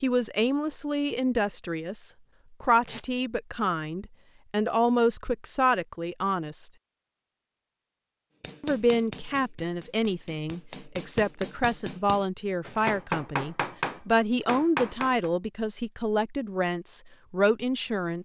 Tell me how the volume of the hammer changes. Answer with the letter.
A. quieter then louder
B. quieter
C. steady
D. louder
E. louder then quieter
D.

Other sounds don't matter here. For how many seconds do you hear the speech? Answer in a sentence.
The speech can be heard for 16 seconds in total.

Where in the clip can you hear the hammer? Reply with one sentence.
You can hear the hammer from 8.4 to 15.3 s.